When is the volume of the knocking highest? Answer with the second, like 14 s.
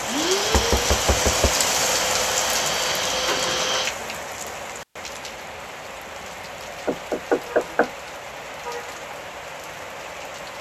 7 s.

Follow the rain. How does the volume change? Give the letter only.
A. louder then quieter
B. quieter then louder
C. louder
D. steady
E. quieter
E.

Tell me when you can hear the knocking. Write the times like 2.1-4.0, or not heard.
0.5-1.5, 6.8-7.9.